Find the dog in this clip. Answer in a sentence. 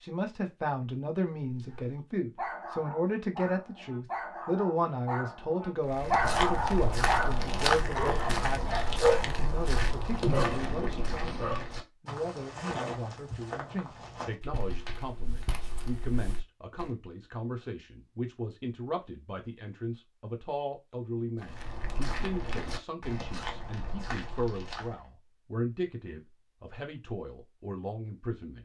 You can hear the dog from 1.4 to 11.7 s.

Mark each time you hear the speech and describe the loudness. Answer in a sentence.
The speech can be heard from 0.0 to 28.6 s, getting quieter.